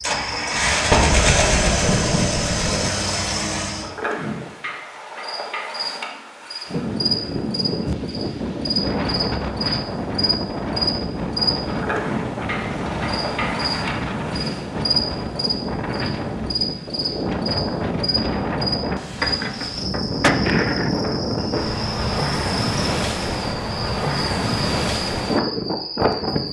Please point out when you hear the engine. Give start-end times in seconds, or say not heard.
0.0-3.9.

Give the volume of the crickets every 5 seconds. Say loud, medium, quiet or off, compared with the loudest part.
medium, loud, loud, loud, medium, medium.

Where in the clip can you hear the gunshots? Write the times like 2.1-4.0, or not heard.
0.9-2.9, 19.1-20.9.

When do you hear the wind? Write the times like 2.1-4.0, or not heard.
6.7-26.4.